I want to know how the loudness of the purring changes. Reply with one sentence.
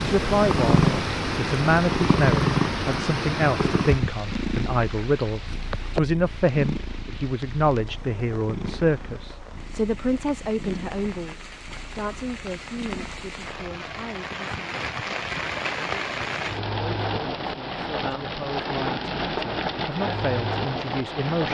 The volume of the purring goes down.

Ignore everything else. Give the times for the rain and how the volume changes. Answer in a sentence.
You can hear the rain from 0.0 to 21.4 s, getting quieter then louder.